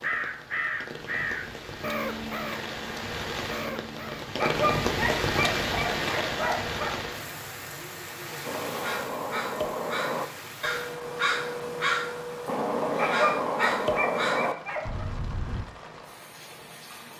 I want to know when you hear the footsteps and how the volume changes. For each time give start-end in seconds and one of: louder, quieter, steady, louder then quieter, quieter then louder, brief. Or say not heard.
not heard.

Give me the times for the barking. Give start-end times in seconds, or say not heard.
4.3-6.9, 12.9-15.1.